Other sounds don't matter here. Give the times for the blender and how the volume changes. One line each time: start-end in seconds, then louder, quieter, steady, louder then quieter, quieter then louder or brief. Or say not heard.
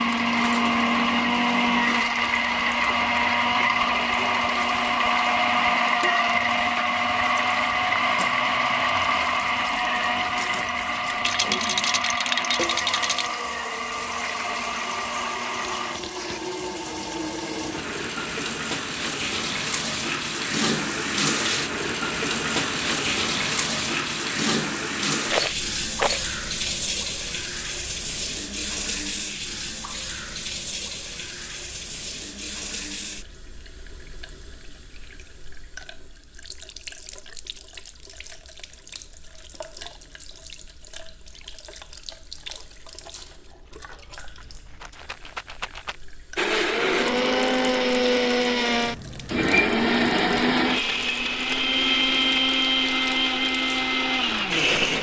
0.0-16.4 quieter
46.4-54.9 steady.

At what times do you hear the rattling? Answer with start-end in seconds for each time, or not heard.
11.2-13.3, 25.3-26.7, 44.0-46.0.